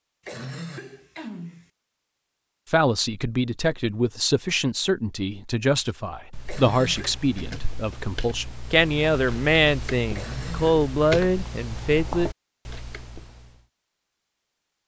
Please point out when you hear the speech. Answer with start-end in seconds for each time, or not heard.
2.6-12.3.